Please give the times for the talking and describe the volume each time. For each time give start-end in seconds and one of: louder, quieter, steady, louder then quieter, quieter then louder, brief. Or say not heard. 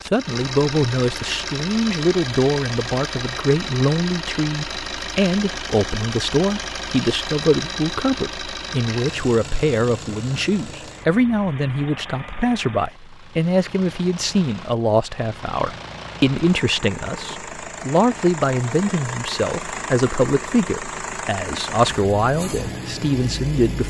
0.1-23.8 steady.